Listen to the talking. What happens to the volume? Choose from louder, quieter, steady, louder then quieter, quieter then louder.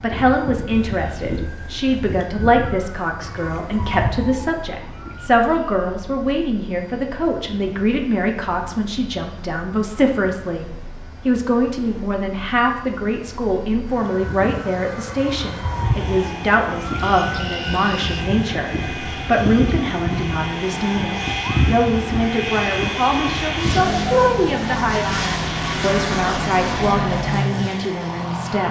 steady.